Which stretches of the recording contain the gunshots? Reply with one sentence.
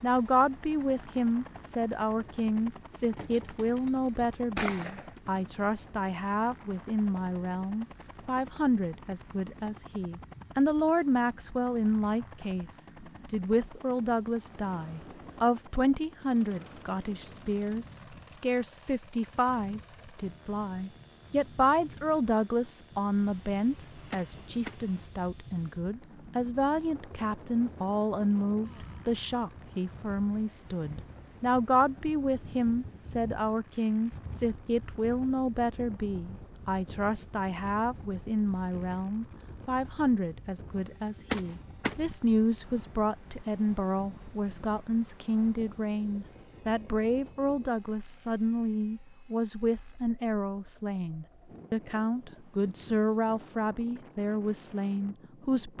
You can hear the gunshots from 3.1 to 5.2 s, from 24.1 to 24.9 s and from 41.3 to 42.0 s.